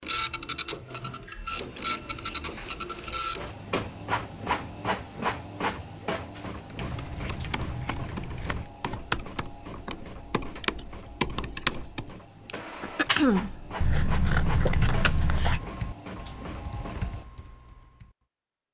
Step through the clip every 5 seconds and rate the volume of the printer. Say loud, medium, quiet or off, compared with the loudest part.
loud, medium, medium, medium.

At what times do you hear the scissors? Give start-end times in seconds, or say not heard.
1.5-3.2, 6.8-8.7, 13.8-15.6.